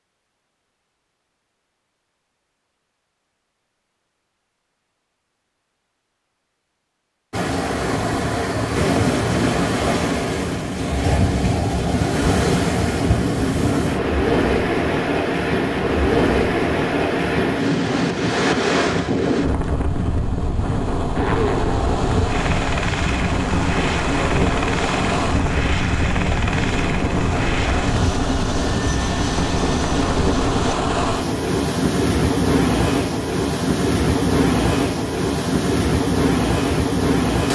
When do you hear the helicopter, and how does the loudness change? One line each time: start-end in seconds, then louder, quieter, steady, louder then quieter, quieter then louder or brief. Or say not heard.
21.1-30.8 steady.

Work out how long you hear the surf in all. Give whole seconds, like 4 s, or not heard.
30 s.